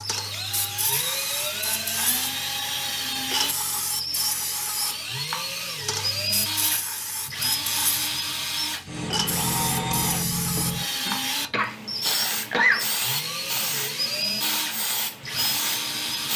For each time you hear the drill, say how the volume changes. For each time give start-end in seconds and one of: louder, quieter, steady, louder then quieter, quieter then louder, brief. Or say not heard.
0.0-16.3 steady.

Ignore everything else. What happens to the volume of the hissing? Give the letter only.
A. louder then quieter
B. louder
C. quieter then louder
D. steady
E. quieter
D.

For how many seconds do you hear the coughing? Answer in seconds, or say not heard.
2 s.